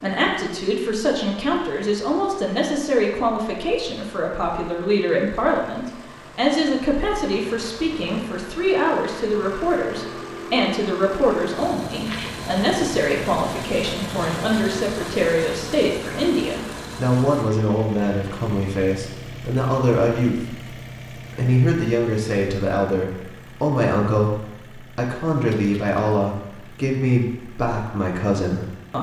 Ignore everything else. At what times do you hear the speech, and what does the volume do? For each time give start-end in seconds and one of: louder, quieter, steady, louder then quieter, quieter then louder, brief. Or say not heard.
0.0-28.9 steady.